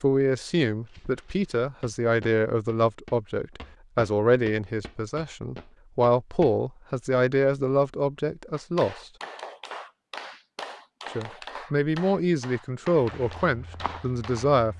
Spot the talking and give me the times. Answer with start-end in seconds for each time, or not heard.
0.0-9.1, 11.1-14.7.